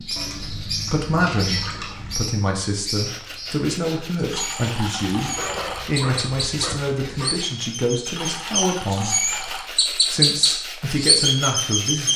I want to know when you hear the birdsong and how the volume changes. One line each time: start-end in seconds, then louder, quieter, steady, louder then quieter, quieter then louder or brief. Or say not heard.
0.0-12.1 louder.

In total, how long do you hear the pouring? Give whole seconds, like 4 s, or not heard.
5 s.